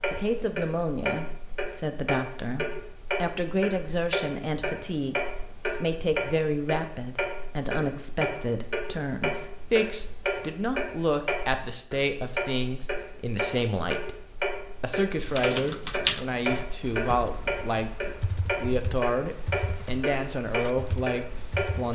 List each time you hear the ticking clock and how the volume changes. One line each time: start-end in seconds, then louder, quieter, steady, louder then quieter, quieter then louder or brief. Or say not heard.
0.0-21.9 steady.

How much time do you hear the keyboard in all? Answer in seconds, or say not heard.
7 s.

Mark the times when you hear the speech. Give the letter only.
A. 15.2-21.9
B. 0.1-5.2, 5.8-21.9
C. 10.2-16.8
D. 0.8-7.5
B.